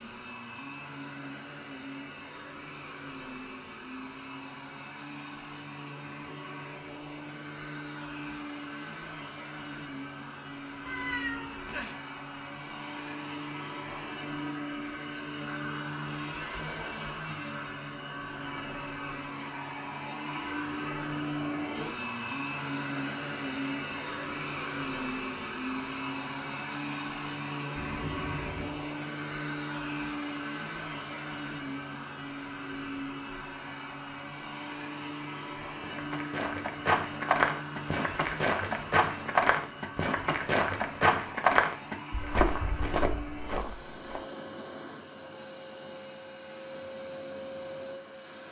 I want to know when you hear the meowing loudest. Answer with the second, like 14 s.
11 s.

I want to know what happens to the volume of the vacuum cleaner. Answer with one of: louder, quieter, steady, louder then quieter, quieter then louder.
louder then quieter.